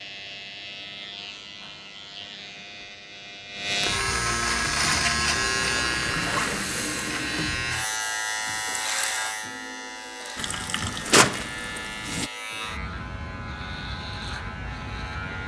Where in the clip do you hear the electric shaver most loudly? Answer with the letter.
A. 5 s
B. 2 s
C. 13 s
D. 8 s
A.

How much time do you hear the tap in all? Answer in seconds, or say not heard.
5 s.